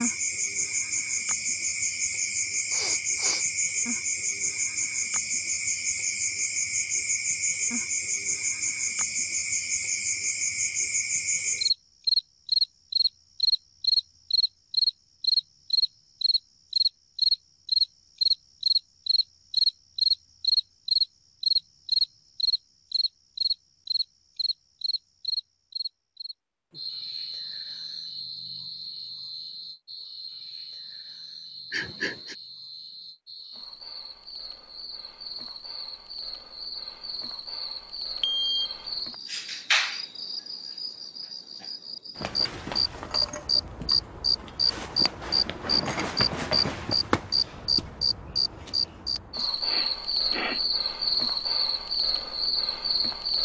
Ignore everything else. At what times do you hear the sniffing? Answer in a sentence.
The sniffing can be heard from 2.6 to 3.5 s, from 31.7 to 32.4 s and from 49.6 to 50.6 s.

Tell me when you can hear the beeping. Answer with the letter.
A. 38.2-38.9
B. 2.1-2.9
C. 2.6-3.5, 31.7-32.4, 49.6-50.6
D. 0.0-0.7
A.